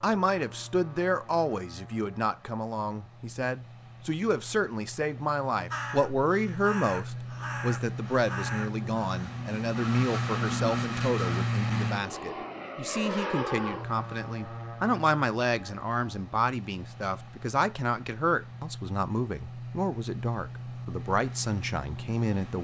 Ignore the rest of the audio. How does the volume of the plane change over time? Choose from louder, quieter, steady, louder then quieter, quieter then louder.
louder then quieter.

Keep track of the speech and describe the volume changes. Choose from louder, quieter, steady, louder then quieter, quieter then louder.
steady.